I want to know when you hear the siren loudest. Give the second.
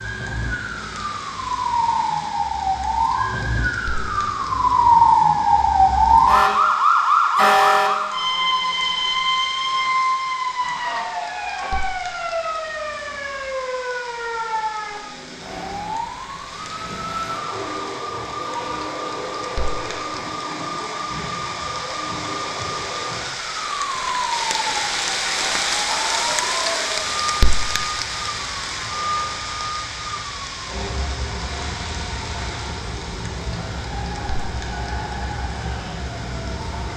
5 s.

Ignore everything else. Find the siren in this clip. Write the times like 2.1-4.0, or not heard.
0.0-36.9.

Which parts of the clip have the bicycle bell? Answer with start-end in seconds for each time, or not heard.
not heard.